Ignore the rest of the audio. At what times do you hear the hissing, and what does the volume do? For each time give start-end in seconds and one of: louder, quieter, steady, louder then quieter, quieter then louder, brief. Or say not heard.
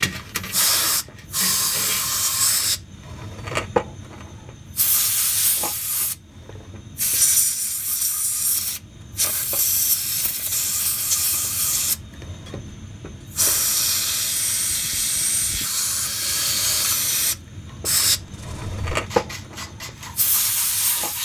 0.1-21.2 steady.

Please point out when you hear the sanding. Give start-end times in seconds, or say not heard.
0.0-2.2, 18.1-21.2.